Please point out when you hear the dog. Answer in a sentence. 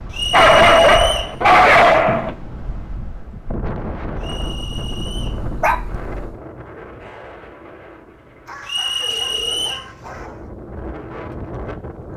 The dog can be heard from 0.3 to 2.4 s, from 4.4 to 6.3 s and from 8.4 to 10.5 s.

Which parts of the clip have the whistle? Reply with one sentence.
You can hear the whistle from 0.1 to 1.4 s, from 4.2 to 5.5 s and from 8.7 to 9.8 s.